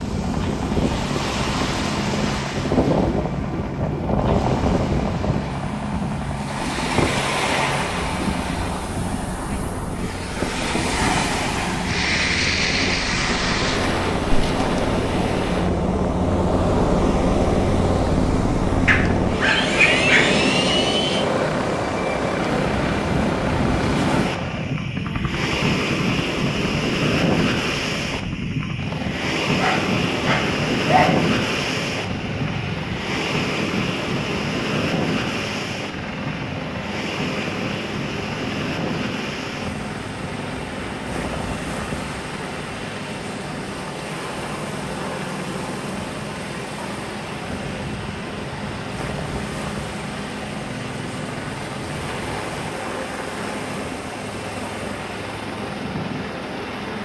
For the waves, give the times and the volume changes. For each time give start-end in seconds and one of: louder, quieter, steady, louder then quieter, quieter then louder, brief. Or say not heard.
0.0-57.0 quieter.